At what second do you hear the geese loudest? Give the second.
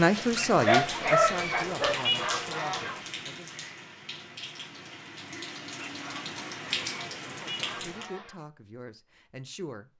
2 s.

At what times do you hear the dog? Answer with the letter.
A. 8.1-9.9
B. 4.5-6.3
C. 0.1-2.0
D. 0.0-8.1
C.